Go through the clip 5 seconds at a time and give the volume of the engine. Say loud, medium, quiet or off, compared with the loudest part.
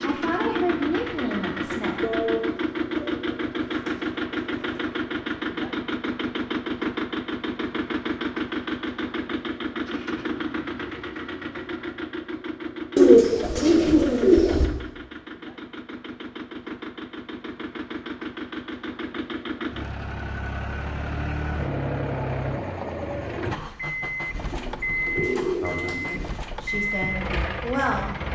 loud, loud, medium, medium, loud, loud.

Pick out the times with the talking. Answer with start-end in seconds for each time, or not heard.
0.0-2.0, 25.6-28.1.